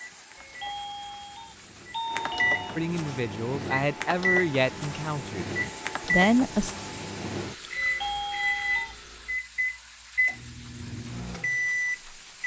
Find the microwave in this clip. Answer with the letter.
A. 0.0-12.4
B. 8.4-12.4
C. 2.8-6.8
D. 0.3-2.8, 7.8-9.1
A.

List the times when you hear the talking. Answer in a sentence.
You can hear the talking from 2.8 to 6.8 s.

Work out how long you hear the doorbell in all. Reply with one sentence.
You can hear the doorbell for 4 seconds altogether.